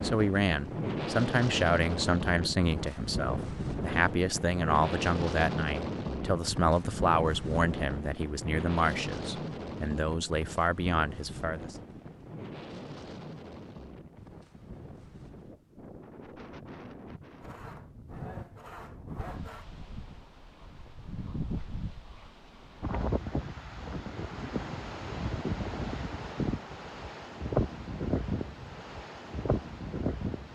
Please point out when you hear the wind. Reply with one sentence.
The wind can be heard from 0.0 to 30.5 s.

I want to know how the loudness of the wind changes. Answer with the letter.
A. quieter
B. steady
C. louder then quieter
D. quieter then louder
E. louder
D.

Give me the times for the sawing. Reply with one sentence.
The sawing can be heard from 17.4 to 19.6 s.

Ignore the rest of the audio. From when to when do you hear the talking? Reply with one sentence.
The talking can be heard from 0.0 to 11.8 s.